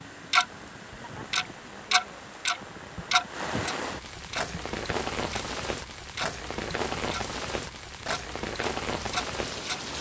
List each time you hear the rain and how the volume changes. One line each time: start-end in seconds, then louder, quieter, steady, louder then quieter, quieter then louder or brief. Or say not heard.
0.0-9.9 louder.